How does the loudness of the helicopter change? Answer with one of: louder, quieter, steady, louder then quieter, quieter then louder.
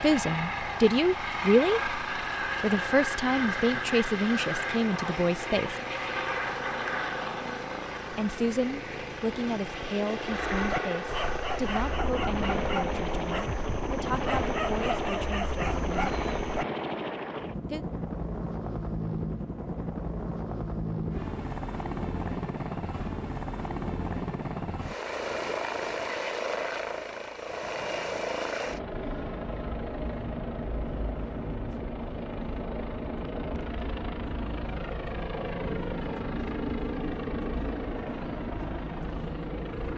steady.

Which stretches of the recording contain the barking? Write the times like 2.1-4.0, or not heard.
10.4-16.6.